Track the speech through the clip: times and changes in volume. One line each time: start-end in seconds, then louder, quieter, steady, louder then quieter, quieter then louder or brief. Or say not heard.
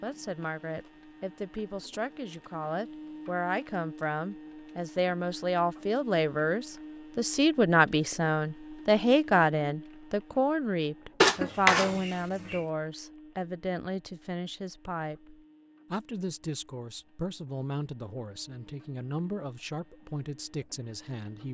0.0-21.5 louder then quieter.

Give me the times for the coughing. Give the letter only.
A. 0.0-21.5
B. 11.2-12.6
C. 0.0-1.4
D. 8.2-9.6
B.